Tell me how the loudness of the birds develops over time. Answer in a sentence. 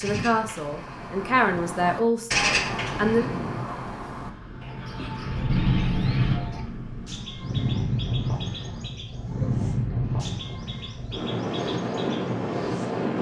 The volume of the birds goes down.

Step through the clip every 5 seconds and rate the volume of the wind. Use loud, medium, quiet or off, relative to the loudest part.
medium, loud, loud.